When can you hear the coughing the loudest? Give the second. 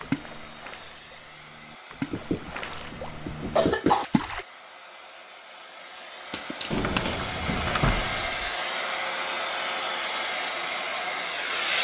4 s.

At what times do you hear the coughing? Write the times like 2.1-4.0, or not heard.
2.1-4.0, 6.3-7.3.